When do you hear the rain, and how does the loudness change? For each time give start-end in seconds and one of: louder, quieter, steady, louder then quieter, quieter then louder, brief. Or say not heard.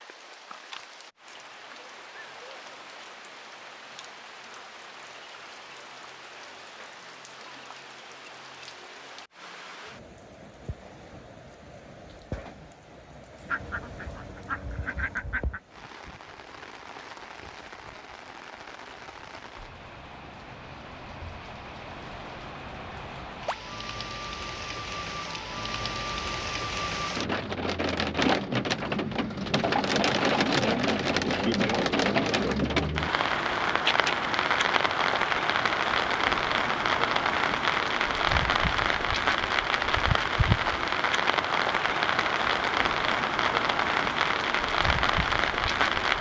0.0-46.1 louder.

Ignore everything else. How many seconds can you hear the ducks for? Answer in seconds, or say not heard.
2 s.